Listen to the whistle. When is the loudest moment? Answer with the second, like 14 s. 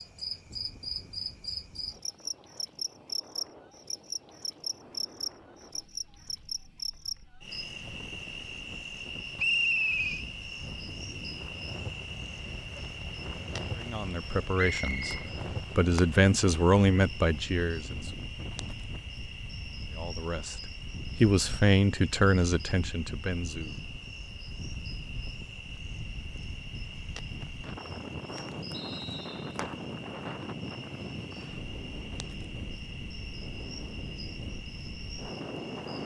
10 s.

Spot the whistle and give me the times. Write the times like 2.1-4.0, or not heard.
9.3-10.2, 14.6-15.2, 28.7-29.6.